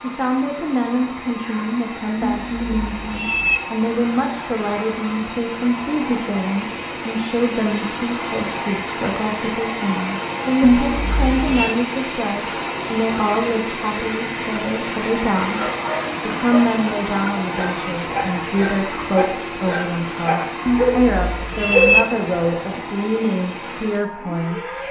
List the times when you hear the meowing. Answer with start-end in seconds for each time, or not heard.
2.2-3.6, 10.6-11.8, 20.6-22.1.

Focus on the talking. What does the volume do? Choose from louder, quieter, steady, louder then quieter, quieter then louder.
steady.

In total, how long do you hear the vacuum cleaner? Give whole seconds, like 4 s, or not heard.
25 s.